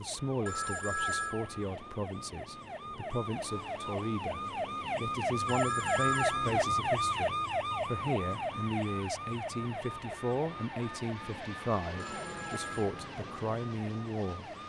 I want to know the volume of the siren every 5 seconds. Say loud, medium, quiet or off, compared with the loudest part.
medium, loud, quiet.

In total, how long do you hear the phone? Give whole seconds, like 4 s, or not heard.
3 s.